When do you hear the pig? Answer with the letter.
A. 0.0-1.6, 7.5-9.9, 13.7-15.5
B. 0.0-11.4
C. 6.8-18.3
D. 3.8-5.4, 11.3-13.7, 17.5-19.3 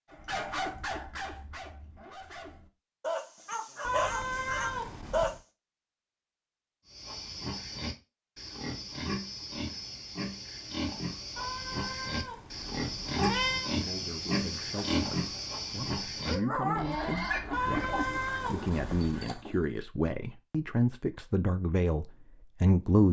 C.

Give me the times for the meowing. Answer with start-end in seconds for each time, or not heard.
3.8-5.4, 11.3-13.7, 17.5-19.3.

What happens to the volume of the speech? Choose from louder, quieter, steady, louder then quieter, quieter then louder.
louder.